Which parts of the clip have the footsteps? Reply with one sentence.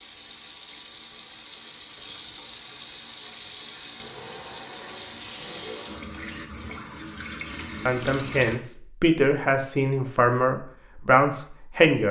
You can't hear the footsteps here.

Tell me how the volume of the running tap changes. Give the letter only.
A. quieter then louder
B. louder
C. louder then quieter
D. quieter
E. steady
E.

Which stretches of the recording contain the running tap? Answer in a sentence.
You can hear the running tap from 0.0 to 8.6 s.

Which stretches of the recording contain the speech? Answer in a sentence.
The speech can be heard from 7.8 to 12.0 s.